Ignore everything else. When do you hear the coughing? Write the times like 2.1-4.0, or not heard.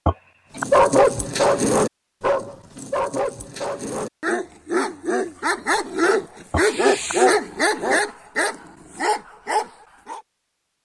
0.1-0.7, 6.5-7.2.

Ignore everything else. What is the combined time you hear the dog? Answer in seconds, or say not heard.
10 s.